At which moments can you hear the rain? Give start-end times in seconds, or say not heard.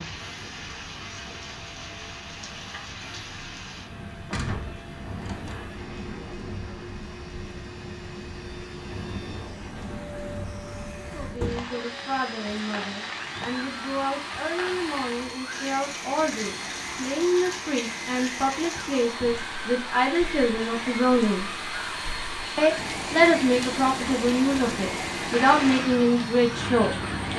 0.0-27.3.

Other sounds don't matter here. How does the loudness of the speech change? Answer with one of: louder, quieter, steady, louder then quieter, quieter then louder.
louder.